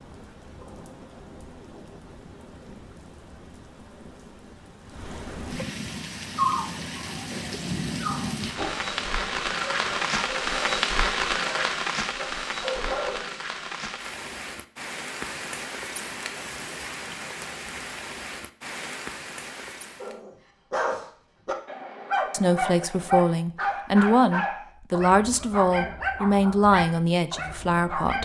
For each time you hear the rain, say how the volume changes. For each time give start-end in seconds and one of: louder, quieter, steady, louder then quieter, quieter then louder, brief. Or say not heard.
0.0-20.2 louder then quieter.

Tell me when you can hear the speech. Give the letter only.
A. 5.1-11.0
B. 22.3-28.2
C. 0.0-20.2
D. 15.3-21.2
B.